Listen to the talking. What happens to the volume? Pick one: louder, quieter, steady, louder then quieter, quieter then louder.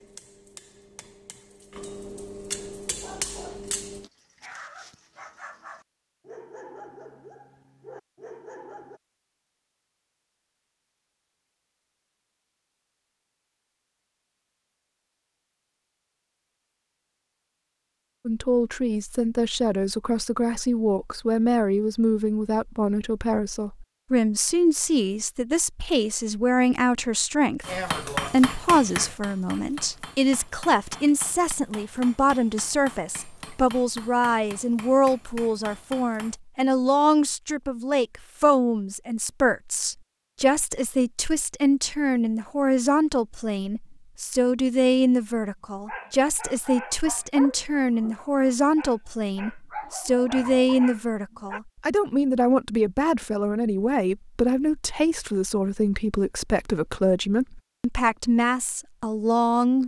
steady.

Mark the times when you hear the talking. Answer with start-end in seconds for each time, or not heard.
18.2-59.8.